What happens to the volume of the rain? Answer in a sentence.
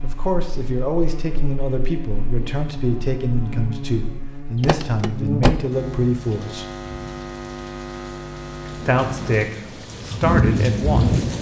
The volume of the rain goes up.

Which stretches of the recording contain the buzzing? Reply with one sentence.
You can hear the buzzing from 0.0 to 9.5 s.